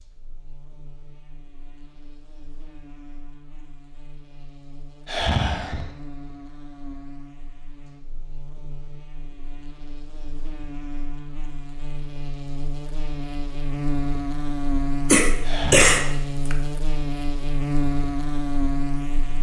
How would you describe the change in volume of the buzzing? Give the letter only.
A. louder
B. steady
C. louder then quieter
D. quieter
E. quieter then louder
A.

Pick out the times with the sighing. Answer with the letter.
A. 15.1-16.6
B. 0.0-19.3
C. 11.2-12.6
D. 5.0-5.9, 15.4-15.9
D.